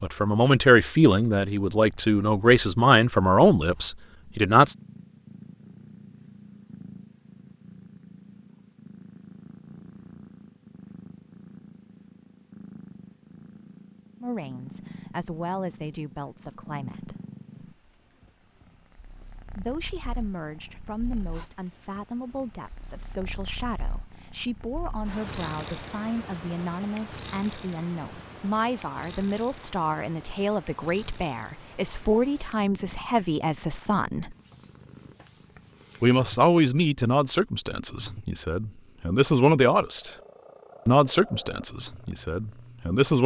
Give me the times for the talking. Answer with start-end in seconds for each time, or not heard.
0.0-4.8, 14.2-17.1, 19.4-34.4, 36.0-40.1, 40.9-43.2.